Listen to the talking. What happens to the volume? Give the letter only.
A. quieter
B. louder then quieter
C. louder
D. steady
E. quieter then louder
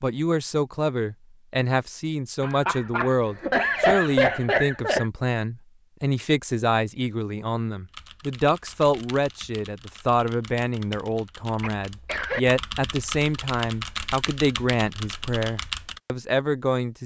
D.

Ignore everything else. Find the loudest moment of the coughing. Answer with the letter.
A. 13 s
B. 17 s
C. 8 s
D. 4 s
D.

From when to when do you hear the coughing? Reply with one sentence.
You can hear the coughing from 2.4 to 5.0 s and from 11.6 to 12.4 s.